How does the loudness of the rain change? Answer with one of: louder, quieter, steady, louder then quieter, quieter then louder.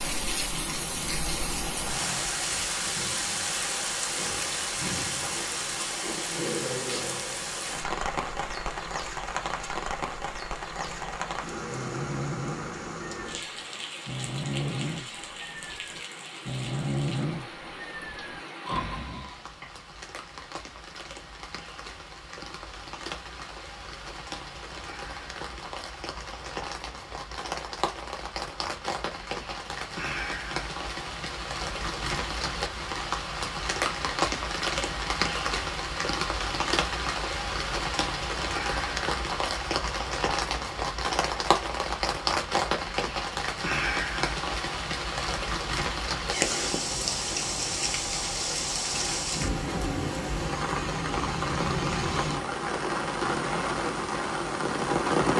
quieter then louder.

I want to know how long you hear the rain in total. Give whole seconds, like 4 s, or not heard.
55 s.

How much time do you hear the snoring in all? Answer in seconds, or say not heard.
9 s.